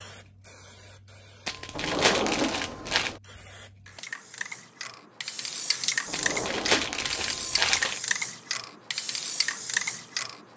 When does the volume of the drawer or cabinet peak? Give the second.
2 s.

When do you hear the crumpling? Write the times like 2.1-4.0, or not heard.
1.4-3.1, 6.1-8.0.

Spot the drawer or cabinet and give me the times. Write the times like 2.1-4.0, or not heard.
1.7-3.2, 6.0-7.5.